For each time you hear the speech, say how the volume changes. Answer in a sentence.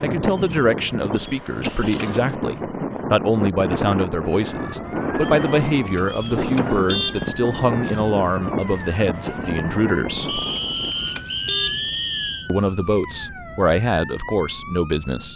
You can hear the speech from 0.0 to 10.4 s, at a steady volume; and briefly from 12.4 to 15.3 s.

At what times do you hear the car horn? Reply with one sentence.
The car horn can be heard from 1.6 to 2.2 s, from 6.0 to 7.3 s and from 10.6 to 11.9 s.